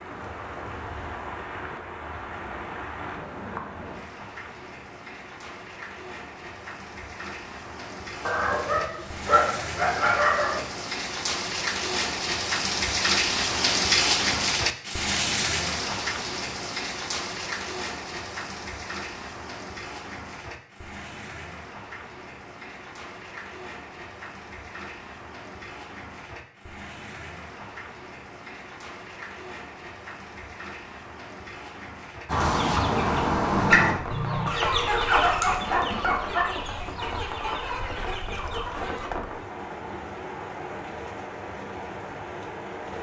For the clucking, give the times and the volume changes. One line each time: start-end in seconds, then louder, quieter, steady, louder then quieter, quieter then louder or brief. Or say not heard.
32.2-39.1 quieter.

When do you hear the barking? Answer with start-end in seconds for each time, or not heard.
8.2-10.7, 35.0-36.5.